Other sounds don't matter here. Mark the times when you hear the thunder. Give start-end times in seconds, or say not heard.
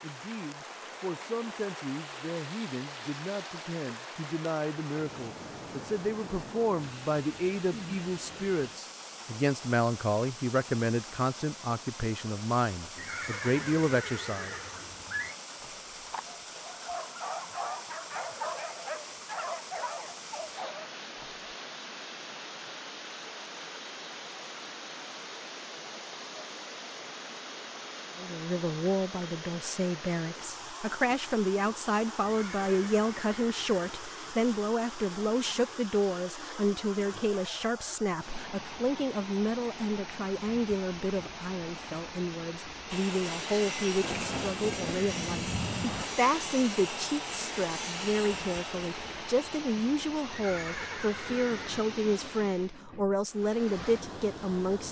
44.0-46.0.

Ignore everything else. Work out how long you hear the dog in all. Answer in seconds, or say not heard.
6 s.